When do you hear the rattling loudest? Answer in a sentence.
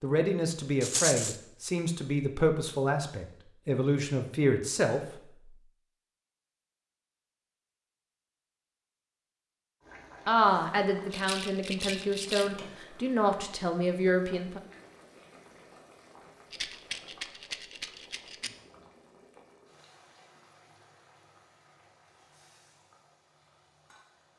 The volume of the rattling peaks at 1 second.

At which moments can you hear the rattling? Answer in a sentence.
You can hear the rattling from 0.8 to 1.4 s, from 11.1 to 12.5 s and from 16.5 to 18.5 s.